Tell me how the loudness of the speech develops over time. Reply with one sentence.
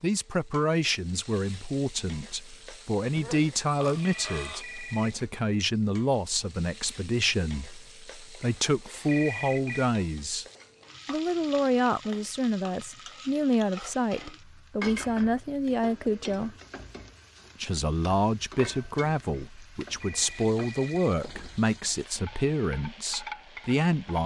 The loudness of the speech stays about the same.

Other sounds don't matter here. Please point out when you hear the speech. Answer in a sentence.
The speech can be heard from 0.0 to 10.4 s, from 11.1 to 16.6 s and from 17.6 to 24.2 s.